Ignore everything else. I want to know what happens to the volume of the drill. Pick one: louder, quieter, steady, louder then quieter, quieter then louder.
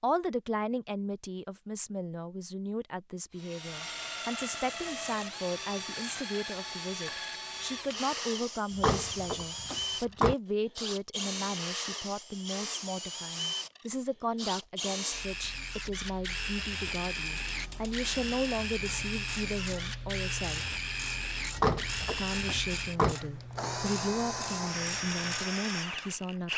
steady.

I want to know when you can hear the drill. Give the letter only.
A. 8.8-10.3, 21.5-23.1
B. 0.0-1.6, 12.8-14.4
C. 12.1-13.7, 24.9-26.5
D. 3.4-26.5
D.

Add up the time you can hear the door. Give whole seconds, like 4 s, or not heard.
3 s.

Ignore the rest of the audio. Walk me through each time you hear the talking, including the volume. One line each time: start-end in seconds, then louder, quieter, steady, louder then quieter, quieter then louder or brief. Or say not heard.
0.0-20.6 steady
22.1-26.5 steady.